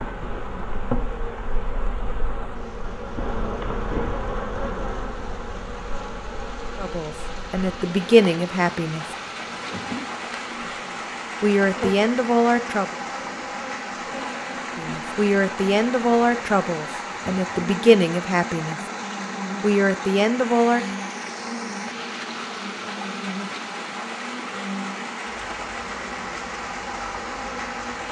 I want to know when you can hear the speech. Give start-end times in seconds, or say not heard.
6.8-9.2, 11.4-12.9, 14.8-18.8, 19.6-20.9.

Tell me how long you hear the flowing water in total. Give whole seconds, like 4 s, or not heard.
28 s.